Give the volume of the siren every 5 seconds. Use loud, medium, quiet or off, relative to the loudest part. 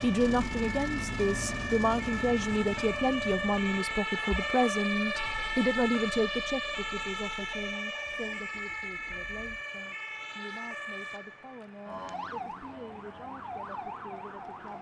loud, loud, medium.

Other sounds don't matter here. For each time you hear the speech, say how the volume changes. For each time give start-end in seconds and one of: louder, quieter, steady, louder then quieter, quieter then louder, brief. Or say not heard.
0.0-14.7 quieter.